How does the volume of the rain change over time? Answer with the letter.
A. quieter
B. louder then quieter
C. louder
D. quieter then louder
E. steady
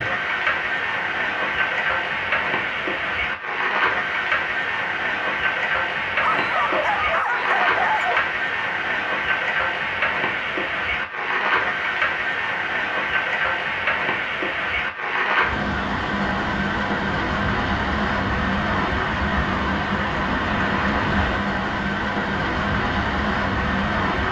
E.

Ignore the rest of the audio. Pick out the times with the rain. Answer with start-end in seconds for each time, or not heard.
0.0-24.2.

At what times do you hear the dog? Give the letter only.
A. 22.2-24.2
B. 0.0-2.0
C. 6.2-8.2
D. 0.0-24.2
C.